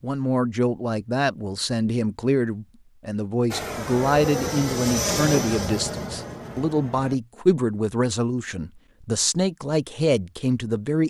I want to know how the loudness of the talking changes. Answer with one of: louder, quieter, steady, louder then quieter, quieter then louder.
steady.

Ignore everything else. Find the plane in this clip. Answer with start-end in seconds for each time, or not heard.
3.5-7.2.